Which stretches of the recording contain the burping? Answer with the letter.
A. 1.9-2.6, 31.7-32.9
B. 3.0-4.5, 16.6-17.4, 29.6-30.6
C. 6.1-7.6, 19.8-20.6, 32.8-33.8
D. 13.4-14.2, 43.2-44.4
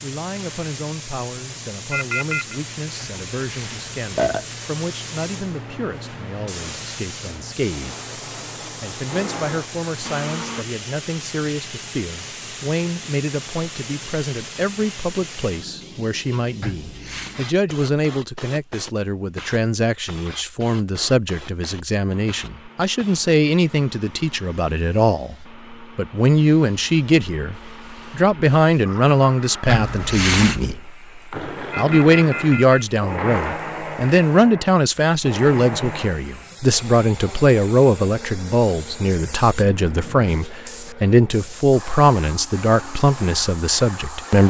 B.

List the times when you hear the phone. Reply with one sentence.
You can hear the phone from 1.9 to 2.6 s and from 31.7 to 32.9 s.